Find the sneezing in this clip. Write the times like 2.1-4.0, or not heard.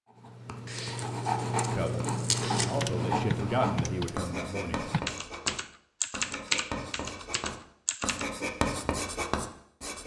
not heard.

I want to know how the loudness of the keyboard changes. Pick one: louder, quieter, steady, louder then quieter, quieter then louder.
louder then quieter.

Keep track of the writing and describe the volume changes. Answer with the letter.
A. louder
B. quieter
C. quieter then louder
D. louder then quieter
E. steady
C.